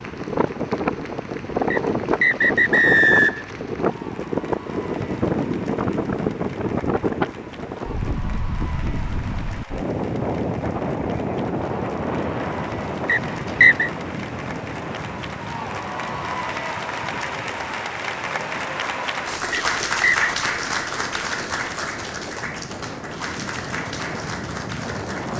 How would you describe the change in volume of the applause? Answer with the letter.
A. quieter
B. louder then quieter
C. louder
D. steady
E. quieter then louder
C.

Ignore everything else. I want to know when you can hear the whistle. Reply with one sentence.
You can hear the whistle from 1.7 to 3.5 s, from 13.1 to 13.9 s and from 19.5 to 20.1 s.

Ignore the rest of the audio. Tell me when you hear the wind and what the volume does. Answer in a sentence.
The wind can be heard from 0.0 to 25.3 s, getting quieter.